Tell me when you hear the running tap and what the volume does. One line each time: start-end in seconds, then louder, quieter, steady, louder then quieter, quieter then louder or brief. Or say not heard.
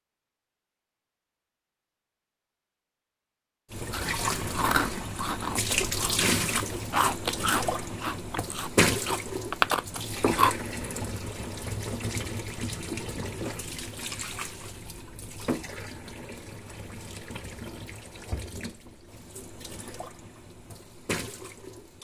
3.7-21.9 quieter.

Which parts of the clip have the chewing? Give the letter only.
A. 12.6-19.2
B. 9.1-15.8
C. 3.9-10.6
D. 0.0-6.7
C.